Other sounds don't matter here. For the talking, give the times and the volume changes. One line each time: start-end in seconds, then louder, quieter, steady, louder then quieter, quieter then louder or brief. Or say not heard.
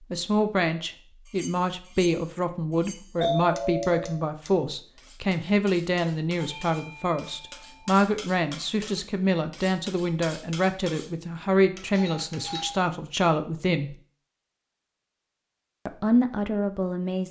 0.0-13.9 steady
15.8-17.2 brief.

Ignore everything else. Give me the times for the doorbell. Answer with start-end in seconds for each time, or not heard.
3.2-4.2, 6.4-7.8, 11.8-12.8.